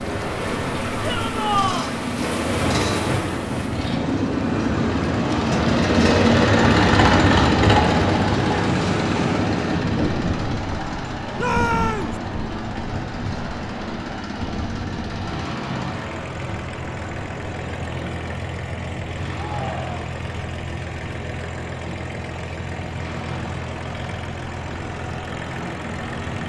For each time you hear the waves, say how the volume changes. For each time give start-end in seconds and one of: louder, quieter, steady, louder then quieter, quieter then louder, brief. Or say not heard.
0.0-26.4 quieter.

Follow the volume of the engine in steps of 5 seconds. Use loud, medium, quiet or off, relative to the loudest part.
medium, loud, medium, quiet, quiet, quiet.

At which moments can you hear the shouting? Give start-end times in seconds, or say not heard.
1.0-1.9, 11.3-12.2, 19.3-20.0.